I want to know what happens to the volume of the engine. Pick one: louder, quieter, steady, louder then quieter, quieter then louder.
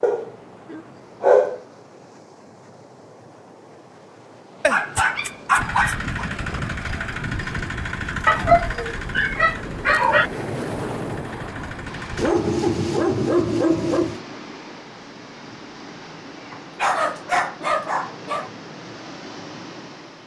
quieter.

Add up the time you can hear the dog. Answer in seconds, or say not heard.
9 s.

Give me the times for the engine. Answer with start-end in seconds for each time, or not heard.
5.5-12.3.